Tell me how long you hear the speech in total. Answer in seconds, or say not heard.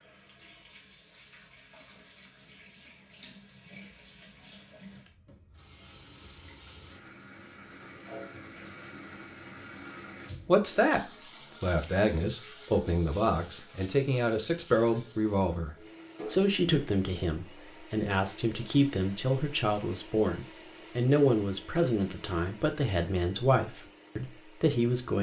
15 s.